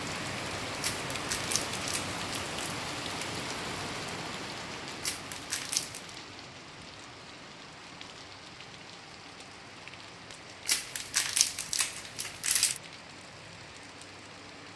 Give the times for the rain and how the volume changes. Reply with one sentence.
You can hear the rain from 0.0 to 14.7 s, getting quieter.